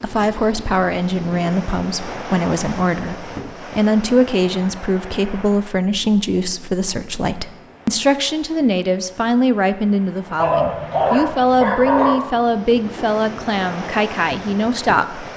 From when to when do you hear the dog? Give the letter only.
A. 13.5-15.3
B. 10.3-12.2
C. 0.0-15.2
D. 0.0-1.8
B.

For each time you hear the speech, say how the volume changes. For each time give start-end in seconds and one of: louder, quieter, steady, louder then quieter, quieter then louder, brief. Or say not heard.
0.0-15.2 steady.